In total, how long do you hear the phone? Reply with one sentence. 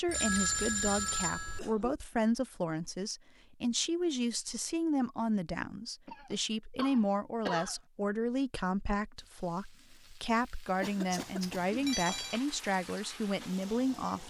You can hear the phone for 3 seconds altogether.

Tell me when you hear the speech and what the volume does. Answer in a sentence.
You can hear the speech from 0.0 to 14.2 s, at a steady volume.